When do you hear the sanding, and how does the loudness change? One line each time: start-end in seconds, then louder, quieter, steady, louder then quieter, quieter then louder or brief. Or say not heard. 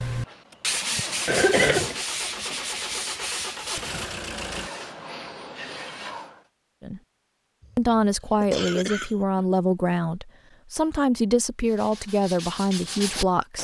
0.0-6.5 quieter
11.7-13.5 brief.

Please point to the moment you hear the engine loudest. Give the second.
4 s.